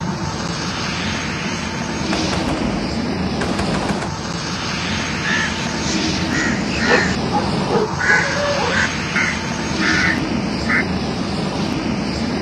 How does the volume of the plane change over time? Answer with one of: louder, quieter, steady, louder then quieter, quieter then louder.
steady.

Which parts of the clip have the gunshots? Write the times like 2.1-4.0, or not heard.
2.1-4.1.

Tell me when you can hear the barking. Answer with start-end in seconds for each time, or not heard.
6.8-8.8.